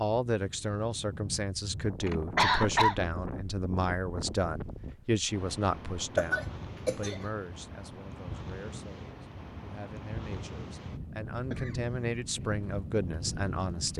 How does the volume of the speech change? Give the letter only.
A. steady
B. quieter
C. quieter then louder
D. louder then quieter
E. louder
C.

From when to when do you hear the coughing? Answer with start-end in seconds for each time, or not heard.
2.0-3.0, 6.2-7.2, 11.5-12.1.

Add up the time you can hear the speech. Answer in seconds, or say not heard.
14 s.